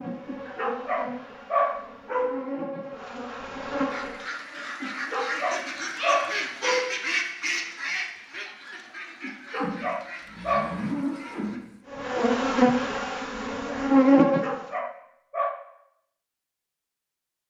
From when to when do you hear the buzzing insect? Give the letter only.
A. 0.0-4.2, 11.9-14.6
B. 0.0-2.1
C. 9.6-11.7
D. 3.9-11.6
A.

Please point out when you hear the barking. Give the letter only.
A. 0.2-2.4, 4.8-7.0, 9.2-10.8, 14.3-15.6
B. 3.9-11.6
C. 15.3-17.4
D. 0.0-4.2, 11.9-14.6
A.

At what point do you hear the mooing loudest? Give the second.
11 s.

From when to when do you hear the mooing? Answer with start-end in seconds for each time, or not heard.
9.6-11.7.